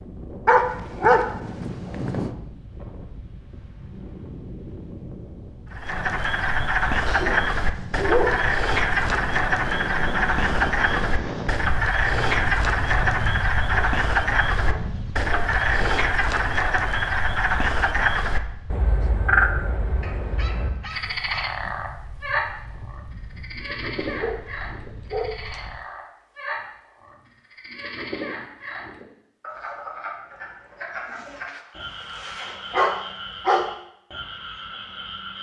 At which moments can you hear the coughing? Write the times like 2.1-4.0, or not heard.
not heard.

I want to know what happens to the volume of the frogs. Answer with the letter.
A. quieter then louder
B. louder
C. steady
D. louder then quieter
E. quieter
E.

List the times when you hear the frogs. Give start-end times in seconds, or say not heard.
5.7-35.3.